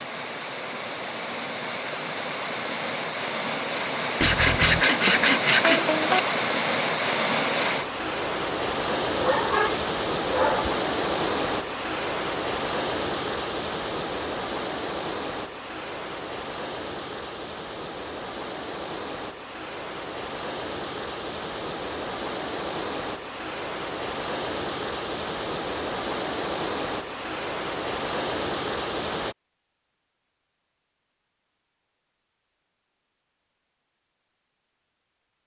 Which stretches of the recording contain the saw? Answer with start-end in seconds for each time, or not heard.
4.2-6.2.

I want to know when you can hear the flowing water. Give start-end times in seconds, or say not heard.
0.0-29.4.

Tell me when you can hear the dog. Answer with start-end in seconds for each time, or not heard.
9.2-10.8.